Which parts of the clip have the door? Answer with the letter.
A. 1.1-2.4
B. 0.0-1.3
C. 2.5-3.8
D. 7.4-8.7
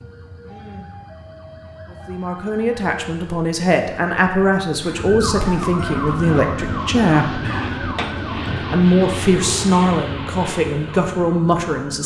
D.